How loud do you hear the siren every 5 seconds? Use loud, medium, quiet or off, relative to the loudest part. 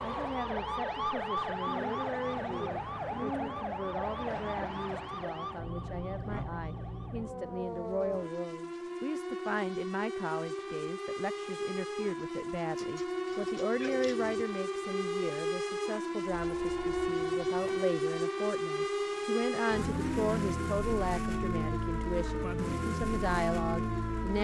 loud, medium, loud, loud, loud.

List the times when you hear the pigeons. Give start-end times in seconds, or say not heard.
1.6-3.6, 12.8-14.4.